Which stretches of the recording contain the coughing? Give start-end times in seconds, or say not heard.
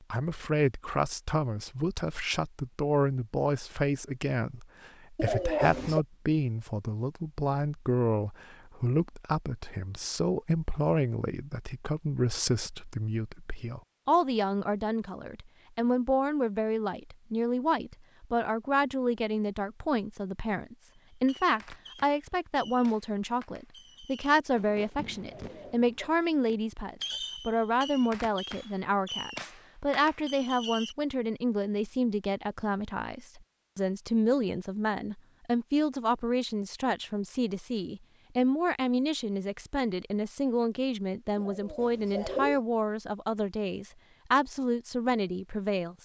5.2-6.0, 25.2-26.1, 41.4-42.6.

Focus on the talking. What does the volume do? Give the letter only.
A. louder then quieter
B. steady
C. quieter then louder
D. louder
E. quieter
B.